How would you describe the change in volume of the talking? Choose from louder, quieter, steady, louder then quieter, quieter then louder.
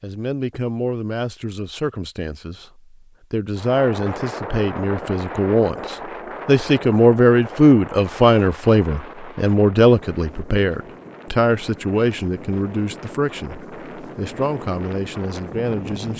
louder then quieter.